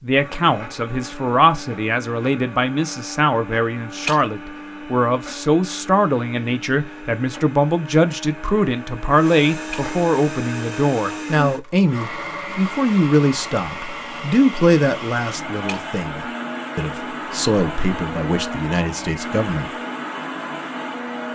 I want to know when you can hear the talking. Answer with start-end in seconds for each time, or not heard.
0.0-19.7.